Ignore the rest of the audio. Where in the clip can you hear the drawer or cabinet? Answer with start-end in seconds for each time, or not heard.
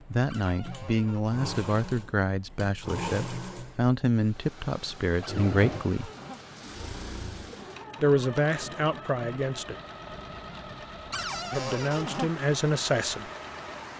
0.2-1.2, 5.2-6.4, 11.1-12.3.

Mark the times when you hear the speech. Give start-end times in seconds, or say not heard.
0.1-6.1, 8.0-9.8, 11.5-13.3.